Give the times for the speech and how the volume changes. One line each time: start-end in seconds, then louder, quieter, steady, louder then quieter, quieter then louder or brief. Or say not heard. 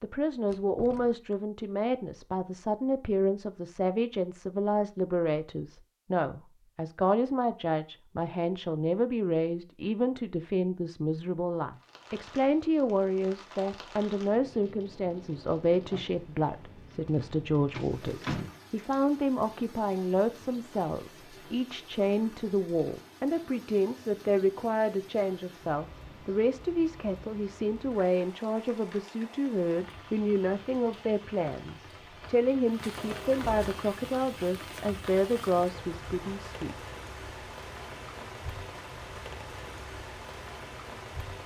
0.0-36.8 steady.